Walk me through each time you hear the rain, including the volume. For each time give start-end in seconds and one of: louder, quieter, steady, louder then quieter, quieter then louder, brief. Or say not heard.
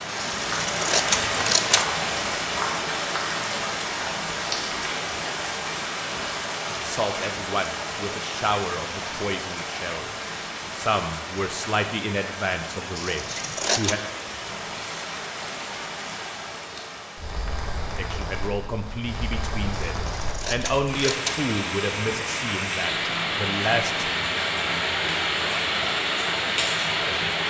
0.0-27.4 quieter then louder.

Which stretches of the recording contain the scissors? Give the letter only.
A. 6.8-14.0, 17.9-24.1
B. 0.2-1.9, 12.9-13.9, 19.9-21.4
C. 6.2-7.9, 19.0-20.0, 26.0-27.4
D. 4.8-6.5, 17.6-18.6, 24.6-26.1
B.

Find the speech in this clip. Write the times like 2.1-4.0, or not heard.
6.8-14.0, 17.9-24.1.